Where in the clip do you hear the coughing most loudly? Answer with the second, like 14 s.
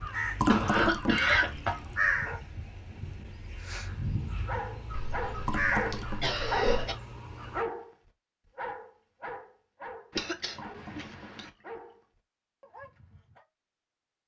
1 s.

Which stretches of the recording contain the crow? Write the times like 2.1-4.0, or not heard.
0.0-7.7.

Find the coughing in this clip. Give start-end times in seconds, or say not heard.
0.5-1.9, 4.9-7.0, 10.2-11.5.